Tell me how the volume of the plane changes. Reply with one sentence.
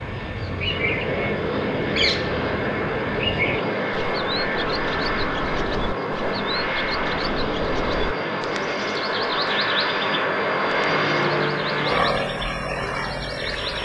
The volume of the plane stays about the same.